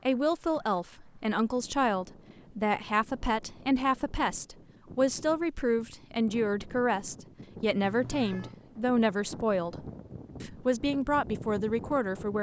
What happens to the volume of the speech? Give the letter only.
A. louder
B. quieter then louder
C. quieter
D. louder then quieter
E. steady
E.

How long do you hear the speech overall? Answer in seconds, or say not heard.
12 s.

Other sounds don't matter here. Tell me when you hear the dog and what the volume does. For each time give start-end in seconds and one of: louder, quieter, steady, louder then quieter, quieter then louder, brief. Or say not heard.
not heard.